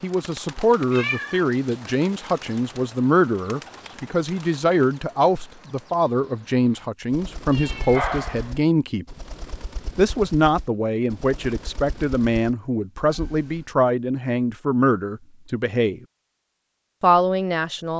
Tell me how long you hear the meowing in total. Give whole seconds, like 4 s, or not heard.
3 s.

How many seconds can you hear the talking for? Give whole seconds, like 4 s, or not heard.
16 s.